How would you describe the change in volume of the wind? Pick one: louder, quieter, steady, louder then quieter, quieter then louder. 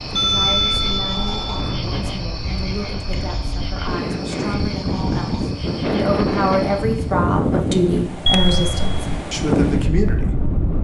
louder.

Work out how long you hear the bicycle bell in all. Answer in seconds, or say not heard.
3 s.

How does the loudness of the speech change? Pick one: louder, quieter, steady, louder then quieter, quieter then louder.
louder.